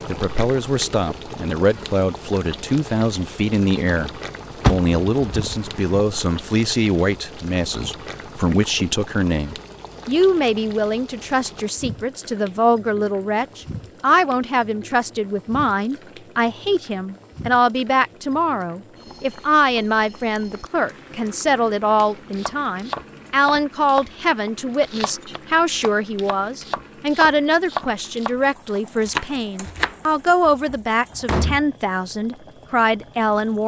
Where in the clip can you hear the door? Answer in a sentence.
The door can be heard from 4.6 to 6.0 s and from 30.4 to 31.6 s.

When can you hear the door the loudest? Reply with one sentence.
The loudest moment of the door is at 5 seconds.